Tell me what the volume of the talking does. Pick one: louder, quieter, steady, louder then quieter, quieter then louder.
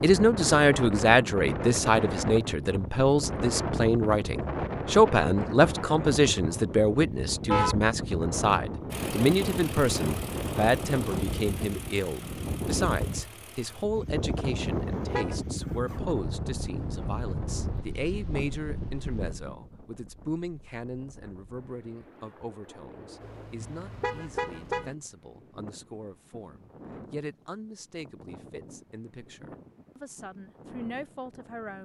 quieter.